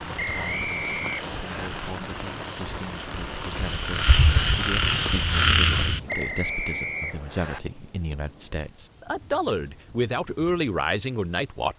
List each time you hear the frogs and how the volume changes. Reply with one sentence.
The frogs can be heard from 0.0 to 6.0 s, getting louder.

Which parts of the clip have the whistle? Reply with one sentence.
You can hear the whistle from 0.1 to 1.7 s and from 6.0 to 7.6 s.